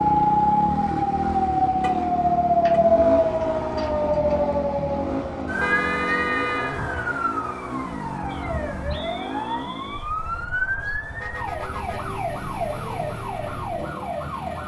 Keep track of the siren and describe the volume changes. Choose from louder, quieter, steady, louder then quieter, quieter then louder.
quieter.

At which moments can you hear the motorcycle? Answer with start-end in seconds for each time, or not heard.
0.0-14.6.